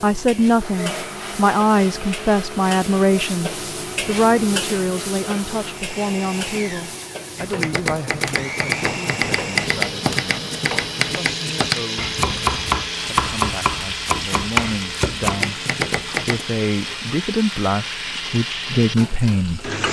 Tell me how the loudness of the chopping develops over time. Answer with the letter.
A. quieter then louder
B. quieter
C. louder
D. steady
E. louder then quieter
D.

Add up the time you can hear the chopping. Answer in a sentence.
You can hear the chopping for 9 seconds altogether.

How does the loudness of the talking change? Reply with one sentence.
The loudness of the talking goes down, then up.